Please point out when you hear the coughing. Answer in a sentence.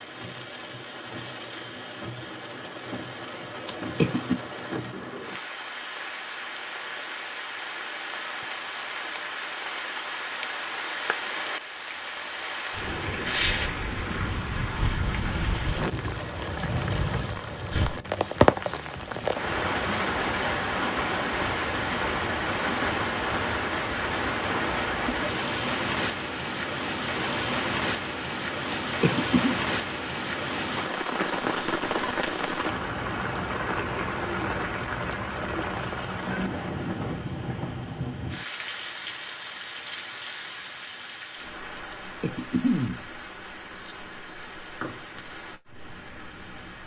The coughing can be heard from 3.6 to 4.3 s, from 28.6 to 29.6 s and from 41.9 to 43.0 s.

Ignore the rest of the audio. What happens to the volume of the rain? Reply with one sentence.
The loudness of the rain goes up, then down.